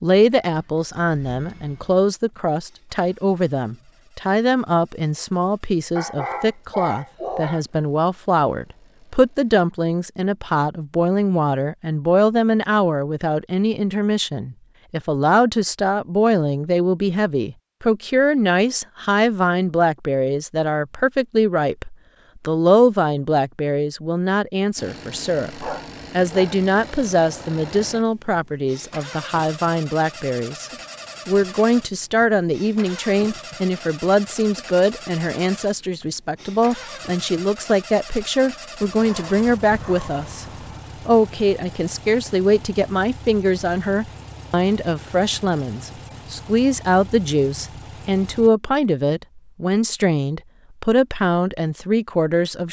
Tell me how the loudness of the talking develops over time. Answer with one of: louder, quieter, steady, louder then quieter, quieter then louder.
steady.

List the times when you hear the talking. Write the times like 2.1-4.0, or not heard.
0.0-40.5, 41.0-52.6.